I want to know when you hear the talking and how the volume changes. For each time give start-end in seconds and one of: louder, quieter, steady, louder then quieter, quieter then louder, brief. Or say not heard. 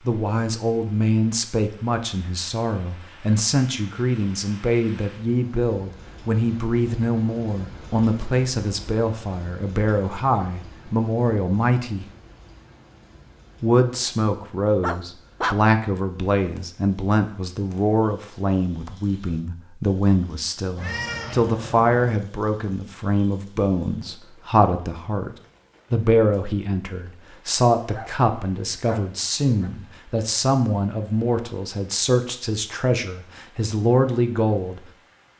0.1-12.1 steady
13.6-25.3 steady
25.9-34.8 steady.